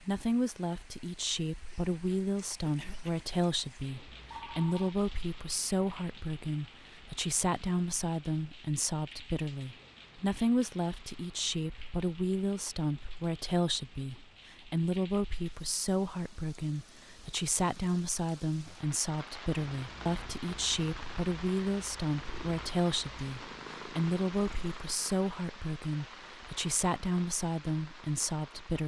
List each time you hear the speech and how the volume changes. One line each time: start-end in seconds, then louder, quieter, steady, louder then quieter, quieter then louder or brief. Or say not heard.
0.0-28.8 steady.